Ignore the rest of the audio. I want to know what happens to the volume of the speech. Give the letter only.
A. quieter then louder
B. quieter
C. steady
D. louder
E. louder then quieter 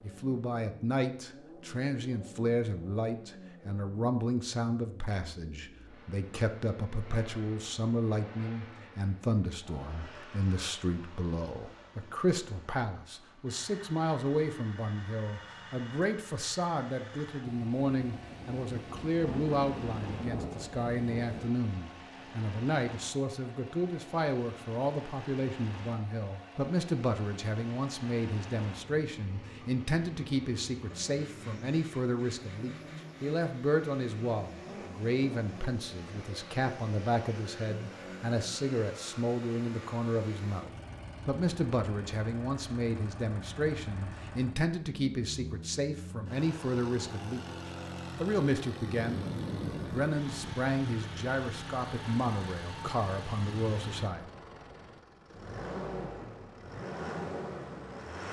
C.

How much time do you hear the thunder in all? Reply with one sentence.
The thunder can be heard for 6 seconds in total.